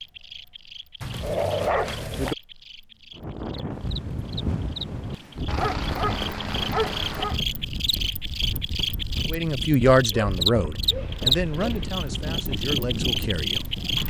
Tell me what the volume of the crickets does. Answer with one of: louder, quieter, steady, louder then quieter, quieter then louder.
louder.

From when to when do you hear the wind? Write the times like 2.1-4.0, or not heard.
3.1-14.0.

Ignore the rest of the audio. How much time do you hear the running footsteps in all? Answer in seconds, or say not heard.
not heard.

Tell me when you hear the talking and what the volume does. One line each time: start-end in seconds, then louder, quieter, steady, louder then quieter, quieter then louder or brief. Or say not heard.
9.3-14.0 quieter.